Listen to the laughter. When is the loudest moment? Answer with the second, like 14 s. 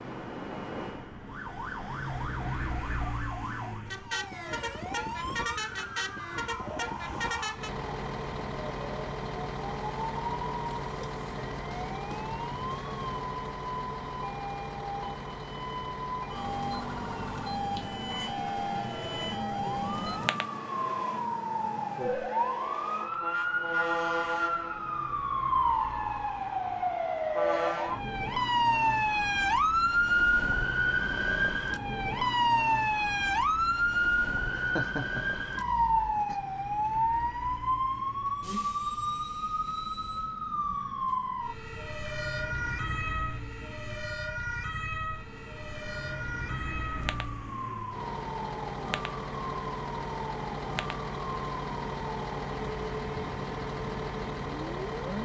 35 s.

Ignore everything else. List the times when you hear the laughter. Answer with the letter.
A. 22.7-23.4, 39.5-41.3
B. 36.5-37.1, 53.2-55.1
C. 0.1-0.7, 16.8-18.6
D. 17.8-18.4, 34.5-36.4
D.